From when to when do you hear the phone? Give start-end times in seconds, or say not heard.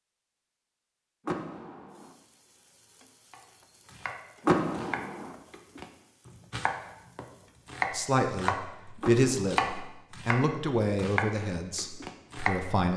not heard.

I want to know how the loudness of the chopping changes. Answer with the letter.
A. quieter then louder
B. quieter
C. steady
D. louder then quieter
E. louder
E.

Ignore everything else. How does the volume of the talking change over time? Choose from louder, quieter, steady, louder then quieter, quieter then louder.
quieter.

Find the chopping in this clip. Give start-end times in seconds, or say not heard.
3.3-8.7, 9.5-12.6.